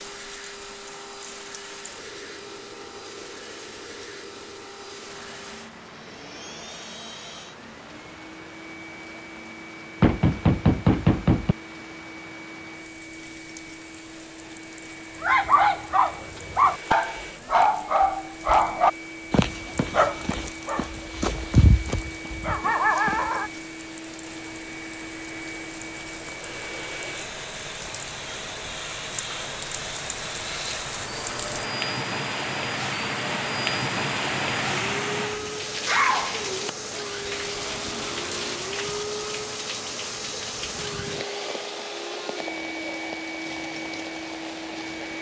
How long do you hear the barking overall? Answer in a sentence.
You can hear the barking for 8 seconds altogether.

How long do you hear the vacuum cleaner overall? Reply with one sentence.
The vacuum cleaner can be heard for 45 seconds in total.